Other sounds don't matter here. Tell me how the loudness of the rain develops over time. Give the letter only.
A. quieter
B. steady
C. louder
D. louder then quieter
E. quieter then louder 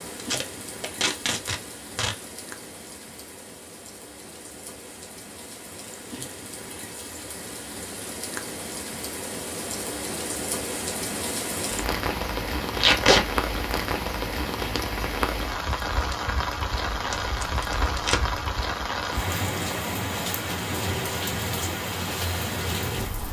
C.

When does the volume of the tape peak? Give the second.
13 s.